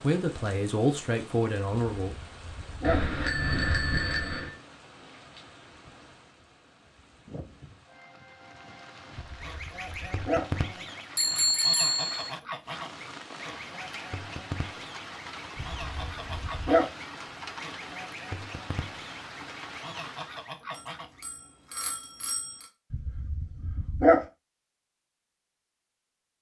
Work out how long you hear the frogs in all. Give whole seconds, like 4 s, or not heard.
not heard.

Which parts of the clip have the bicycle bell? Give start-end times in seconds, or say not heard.
2.8-4.5, 11.2-12.3, 20.7-22.6.